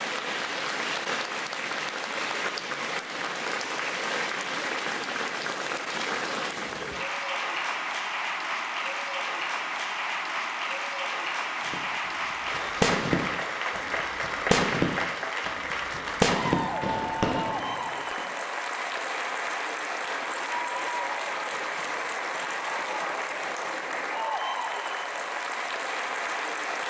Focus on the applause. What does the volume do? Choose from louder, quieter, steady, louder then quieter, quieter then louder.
steady.